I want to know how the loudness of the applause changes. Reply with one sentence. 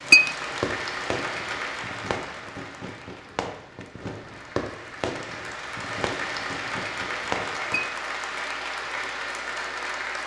The volume of the applause goes down, then up.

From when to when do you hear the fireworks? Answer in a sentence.
You can hear the fireworks from 0.5 to 7.8 s.